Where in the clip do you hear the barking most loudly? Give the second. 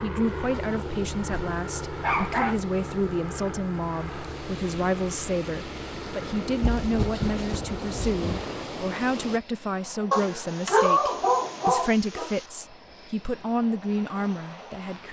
11 s.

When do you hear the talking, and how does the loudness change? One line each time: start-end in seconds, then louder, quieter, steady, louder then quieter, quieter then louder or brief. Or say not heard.
0.0-15.0 steady.